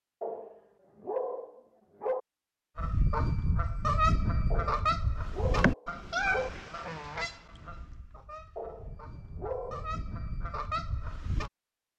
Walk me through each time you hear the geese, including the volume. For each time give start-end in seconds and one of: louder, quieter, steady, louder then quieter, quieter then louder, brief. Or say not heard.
2.8-11.5 quieter then louder.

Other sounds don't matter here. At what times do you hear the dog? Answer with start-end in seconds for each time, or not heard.
0.2-2.2, 4.5-6.5, 8.6-9.9.